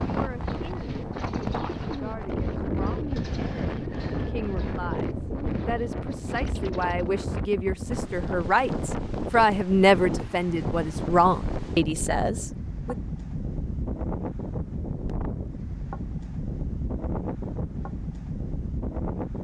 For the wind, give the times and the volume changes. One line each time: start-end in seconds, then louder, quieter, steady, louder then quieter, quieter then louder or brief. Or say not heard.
0.0-19.3 steady.